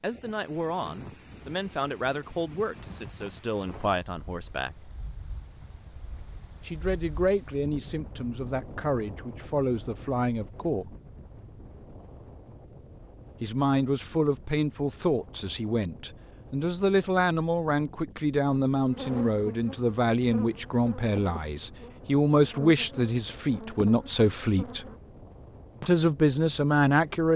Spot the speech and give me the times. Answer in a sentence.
You can hear the speech from 0.0 to 5.0 s, from 6.7 to 10.9 s, from 13.4 to 24.9 s and from 25.8 to 27.3 s.